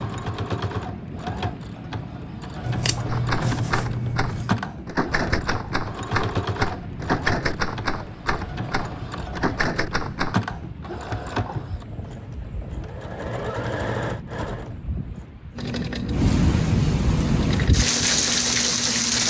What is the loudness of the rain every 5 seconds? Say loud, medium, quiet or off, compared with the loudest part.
quiet, quiet, quiet, loud.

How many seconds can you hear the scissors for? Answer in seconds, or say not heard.
2 s.